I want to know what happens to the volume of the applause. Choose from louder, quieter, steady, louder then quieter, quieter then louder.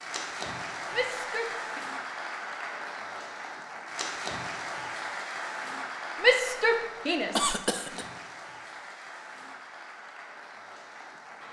quieter.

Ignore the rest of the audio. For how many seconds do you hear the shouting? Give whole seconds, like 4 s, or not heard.
2 s.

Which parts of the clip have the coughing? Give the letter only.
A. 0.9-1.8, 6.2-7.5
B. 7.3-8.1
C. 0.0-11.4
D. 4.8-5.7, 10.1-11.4
B.